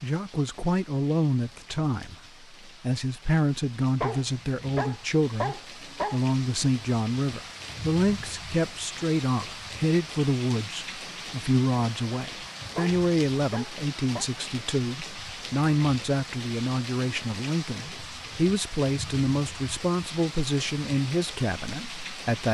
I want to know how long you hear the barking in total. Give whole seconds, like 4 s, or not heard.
4 s.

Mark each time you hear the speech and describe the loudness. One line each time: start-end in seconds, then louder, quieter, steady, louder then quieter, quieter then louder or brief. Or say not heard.
0.0-22.5 steady.